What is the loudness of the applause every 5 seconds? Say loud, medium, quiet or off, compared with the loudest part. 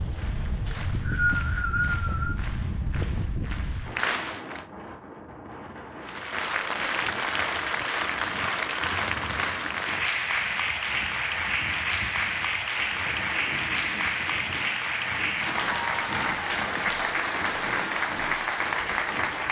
medium, loud, loud, loud.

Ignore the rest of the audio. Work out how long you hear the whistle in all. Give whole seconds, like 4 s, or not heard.
2 s.